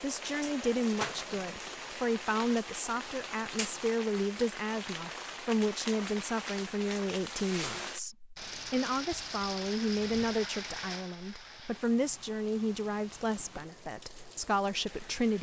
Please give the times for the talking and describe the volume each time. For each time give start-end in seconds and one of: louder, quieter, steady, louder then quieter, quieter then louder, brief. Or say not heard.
0.0-15.3 steady.